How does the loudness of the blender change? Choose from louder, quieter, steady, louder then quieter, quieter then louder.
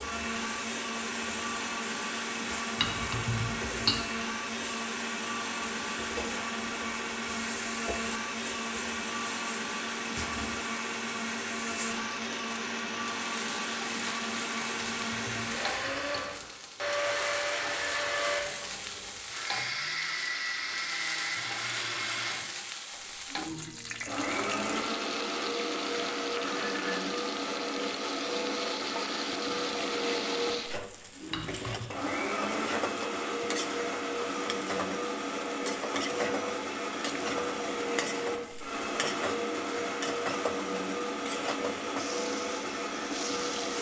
steady.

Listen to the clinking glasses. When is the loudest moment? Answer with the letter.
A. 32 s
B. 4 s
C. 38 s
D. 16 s
B.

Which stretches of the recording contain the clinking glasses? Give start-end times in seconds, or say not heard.
2.8-4.0, 14.8-16.4, 31.3-31.9.